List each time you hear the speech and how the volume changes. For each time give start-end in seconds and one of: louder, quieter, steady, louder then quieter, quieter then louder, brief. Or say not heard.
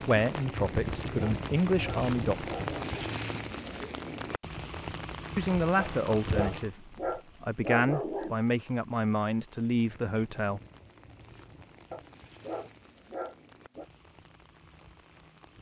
0.1-2.5 brief
5.3-10.6 quieter then louder.